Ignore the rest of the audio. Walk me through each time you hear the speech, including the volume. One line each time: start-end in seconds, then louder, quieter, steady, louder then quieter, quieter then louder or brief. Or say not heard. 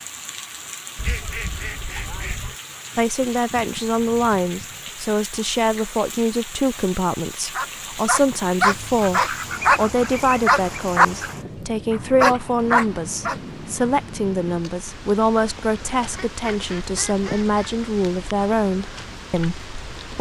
3.0-20.1 steady.